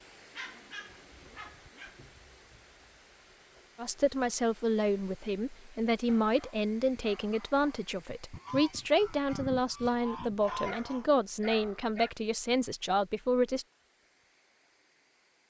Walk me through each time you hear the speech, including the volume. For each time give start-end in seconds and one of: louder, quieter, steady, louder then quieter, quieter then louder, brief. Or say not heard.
3.8-13.7 steady.